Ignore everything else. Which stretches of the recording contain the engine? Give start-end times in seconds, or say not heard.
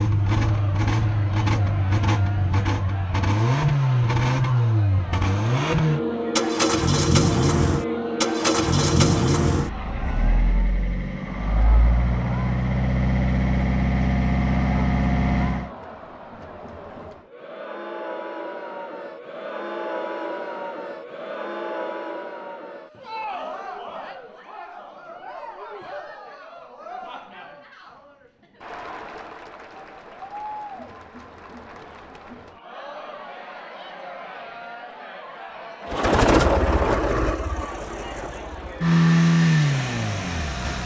0.0-15.7, 35.8-40.8.